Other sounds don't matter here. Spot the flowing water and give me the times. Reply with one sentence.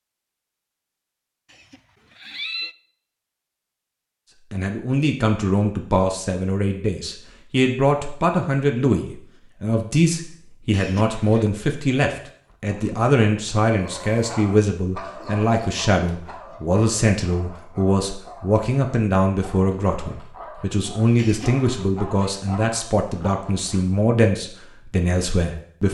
The flowing water can't be heard in this clip.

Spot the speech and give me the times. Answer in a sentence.
You can hear the speech from 4.5 to 25.8 s.